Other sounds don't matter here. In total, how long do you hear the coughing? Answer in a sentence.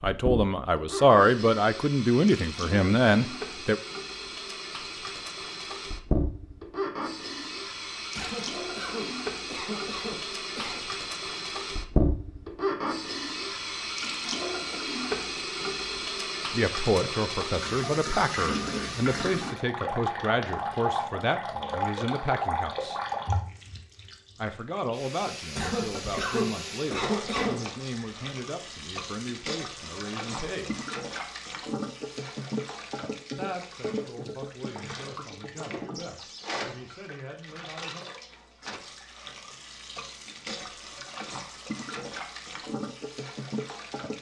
You can hear the coughing for 5 seconds altogether.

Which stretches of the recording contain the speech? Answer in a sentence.
You can hear the speech from 0.0 to 3.8 s, from 16.5 to 23.0 s, from 24.4 to 30.8 s and from 33.4 to 38.0 s.